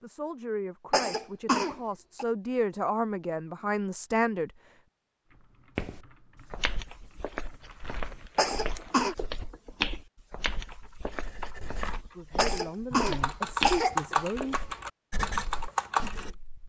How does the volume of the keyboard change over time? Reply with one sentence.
The loudness of the keyboard goes up.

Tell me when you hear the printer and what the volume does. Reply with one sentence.
The printer can't be heard in this clip.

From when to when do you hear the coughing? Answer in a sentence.
The coughing can be heard from 0.9 to 2.2 s, from 8.3 to 9.2 s and from 12.3 to 14.2 s.